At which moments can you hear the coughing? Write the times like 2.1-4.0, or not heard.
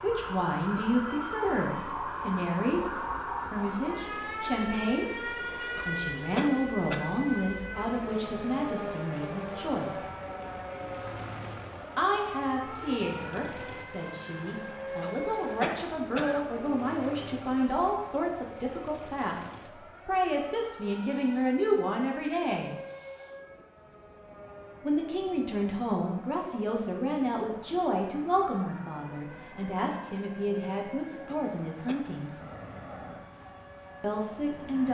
5.8-7.0, 15.0-16.4, 31.2-32.0.